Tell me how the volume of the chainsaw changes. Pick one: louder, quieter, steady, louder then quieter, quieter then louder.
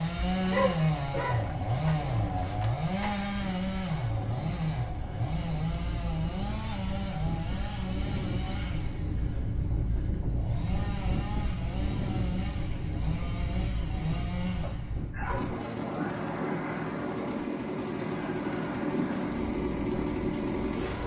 quieter then louder.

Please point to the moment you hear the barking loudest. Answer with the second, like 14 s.
1 s.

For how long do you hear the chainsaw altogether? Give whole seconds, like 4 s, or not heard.
21 s.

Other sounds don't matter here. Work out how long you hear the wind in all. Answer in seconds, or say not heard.
21 s.